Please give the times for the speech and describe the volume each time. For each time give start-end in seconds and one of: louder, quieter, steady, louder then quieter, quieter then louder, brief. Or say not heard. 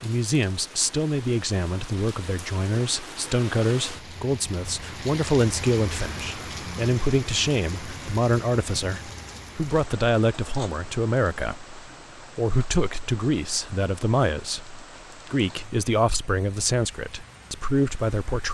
0.0-18.5 steady.